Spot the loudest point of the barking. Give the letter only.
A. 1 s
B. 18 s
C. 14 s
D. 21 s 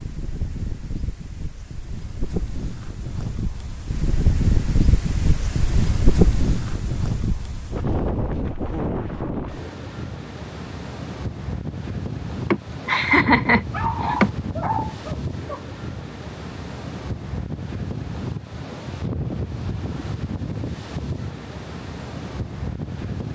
C.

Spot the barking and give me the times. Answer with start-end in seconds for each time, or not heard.
13.7-15.6.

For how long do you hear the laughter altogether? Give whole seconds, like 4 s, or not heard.
2 s.